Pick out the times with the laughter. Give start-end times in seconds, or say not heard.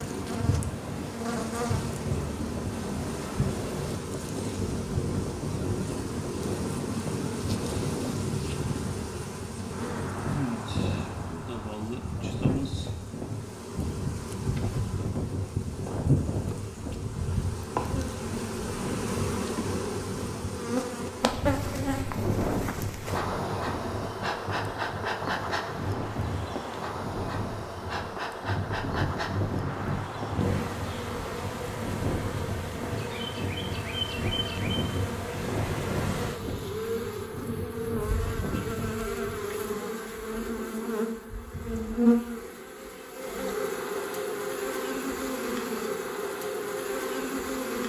not heard.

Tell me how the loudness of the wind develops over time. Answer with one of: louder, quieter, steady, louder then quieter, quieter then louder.
steady.